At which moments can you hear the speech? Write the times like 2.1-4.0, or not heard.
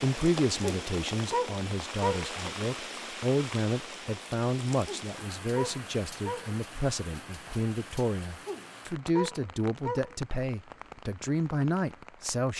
0.0-12.5.